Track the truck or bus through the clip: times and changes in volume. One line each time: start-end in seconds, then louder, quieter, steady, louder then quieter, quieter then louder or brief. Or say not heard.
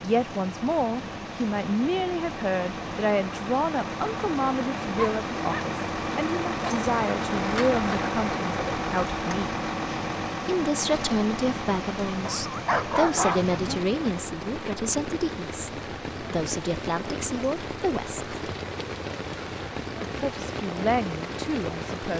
0.0-22.0 louder then quieter.